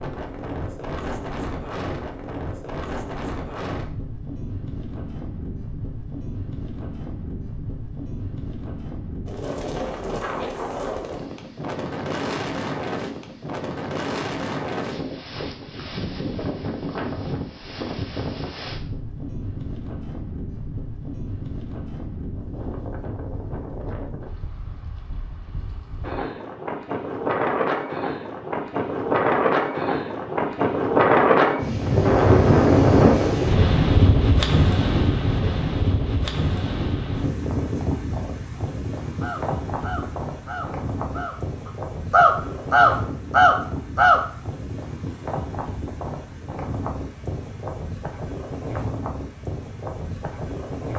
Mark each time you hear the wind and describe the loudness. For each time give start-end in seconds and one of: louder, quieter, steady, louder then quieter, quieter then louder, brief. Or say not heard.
0.0-50.9 louder then quieter.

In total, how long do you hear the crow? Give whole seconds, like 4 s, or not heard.
5 s.